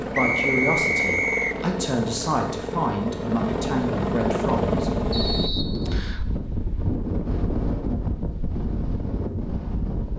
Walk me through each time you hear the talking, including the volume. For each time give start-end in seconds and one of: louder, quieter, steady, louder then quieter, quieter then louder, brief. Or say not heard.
0.0-4.9 steady.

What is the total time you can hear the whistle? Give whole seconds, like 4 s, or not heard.
3 s.